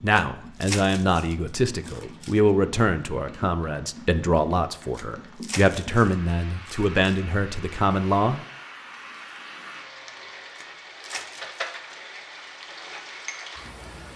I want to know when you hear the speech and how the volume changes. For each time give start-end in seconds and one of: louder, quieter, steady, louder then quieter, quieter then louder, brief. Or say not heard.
0.0-8.4 steady.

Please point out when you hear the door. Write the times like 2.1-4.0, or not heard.
not heard.